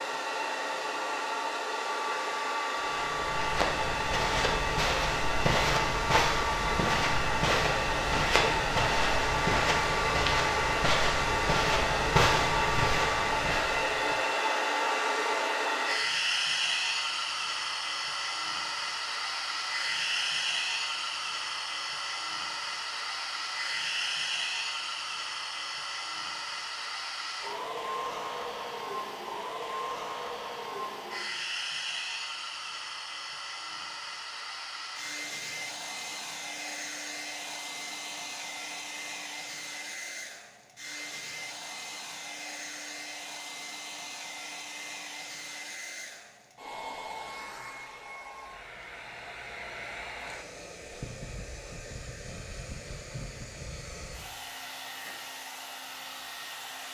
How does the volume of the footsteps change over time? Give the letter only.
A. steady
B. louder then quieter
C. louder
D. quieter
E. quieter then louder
A.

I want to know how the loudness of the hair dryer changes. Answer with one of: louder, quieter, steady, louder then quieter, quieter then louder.
quieter.